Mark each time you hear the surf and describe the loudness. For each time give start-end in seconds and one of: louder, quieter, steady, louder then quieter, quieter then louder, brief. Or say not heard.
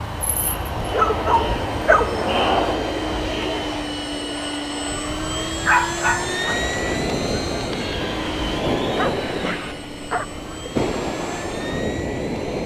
6.0-12.6 steady.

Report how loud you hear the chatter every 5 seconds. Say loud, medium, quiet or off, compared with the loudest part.
loud, medium, off.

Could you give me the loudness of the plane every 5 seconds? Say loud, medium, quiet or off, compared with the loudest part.
loud, loud, medium.